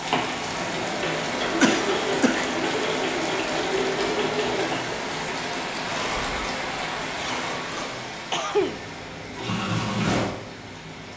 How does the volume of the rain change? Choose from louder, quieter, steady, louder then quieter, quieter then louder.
quieter.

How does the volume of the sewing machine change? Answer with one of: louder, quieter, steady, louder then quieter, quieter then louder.
quieter then louder.